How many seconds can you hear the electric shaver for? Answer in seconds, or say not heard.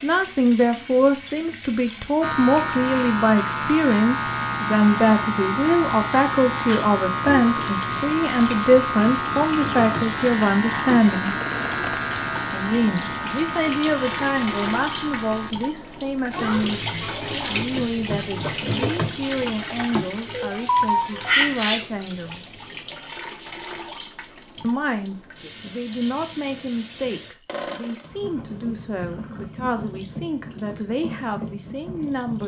13 s.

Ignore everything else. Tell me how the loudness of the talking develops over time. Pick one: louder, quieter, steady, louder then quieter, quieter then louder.
quieter.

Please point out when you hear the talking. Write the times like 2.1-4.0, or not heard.
0.0-11.3, 12.5-22.6, 24.6-32.4.